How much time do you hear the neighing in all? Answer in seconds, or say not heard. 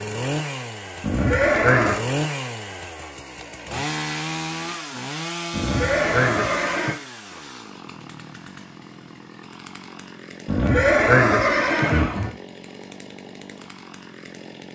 4 s.